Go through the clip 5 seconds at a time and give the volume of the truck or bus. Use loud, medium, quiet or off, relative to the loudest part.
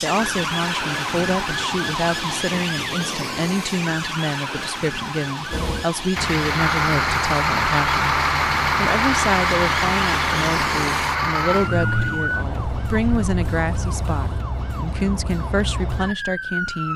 off, loud, medium, off.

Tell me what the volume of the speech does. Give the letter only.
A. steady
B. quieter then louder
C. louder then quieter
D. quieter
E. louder
A.